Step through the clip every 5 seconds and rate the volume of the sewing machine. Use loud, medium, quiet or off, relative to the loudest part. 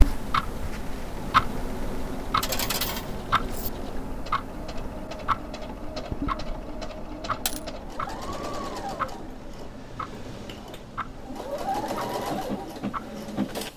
medium, medium, loud.